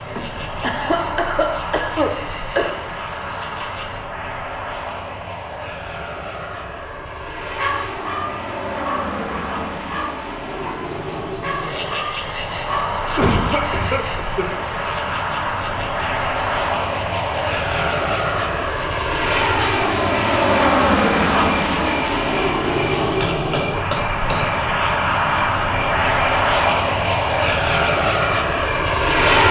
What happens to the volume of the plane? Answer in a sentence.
The loudness of the plane goes up.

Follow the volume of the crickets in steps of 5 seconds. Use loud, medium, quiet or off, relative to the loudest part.
medium, loud, loud, medium, medium, medium.